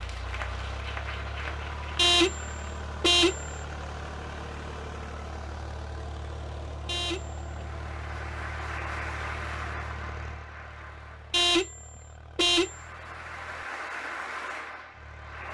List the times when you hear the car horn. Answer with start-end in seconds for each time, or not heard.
1.9-3.5, 6.8-7.4, 11.3-12.8.